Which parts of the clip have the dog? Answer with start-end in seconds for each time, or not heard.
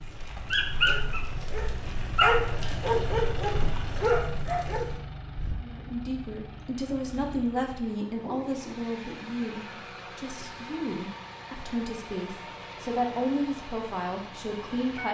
0.0-5.5.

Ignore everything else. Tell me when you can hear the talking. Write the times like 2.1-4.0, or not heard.
5.6-15.0.